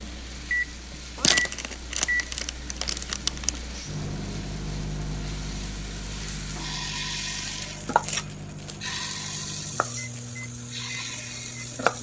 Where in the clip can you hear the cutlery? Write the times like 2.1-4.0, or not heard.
not heard.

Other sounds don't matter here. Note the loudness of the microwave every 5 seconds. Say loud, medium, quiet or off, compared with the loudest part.
loud, medium, medium.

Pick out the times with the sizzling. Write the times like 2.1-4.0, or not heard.
0.0-11.9.